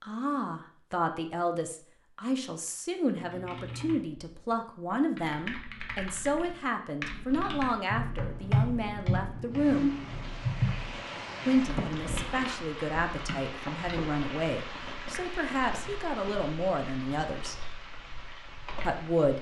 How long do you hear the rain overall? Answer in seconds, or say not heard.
10 s.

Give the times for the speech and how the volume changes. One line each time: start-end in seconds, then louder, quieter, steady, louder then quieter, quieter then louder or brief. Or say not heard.
0.0-9.9 steady
11.4-17.6 steady
18.9-19.3 brief.